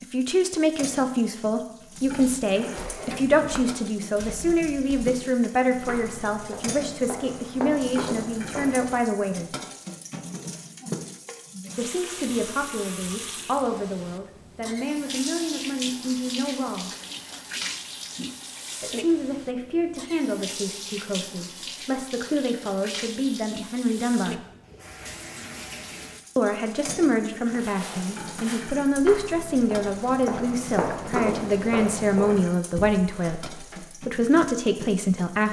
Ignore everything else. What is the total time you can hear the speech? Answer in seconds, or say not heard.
29 s.